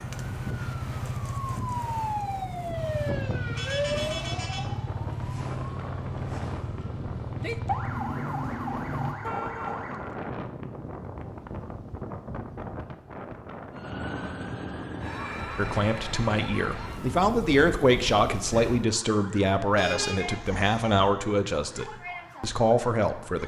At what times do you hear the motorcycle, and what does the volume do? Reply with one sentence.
You can hear the motorcycle from 0.0 to 9.2 s, at a steady volume.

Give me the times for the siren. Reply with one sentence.
The siren can be heard from 0.0 to 10.3 s and from 13.8 to 23.4 s.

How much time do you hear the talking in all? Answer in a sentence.
You can hear the talking for 8 seconds altogether.